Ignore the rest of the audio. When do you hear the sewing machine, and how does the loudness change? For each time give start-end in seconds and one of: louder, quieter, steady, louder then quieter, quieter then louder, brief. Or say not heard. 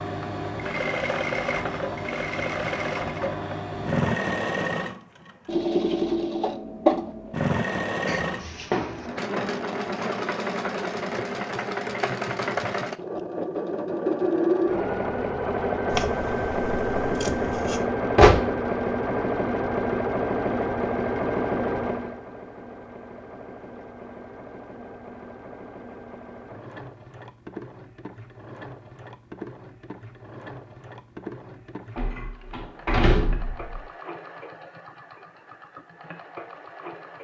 0.0-37.1 quieter.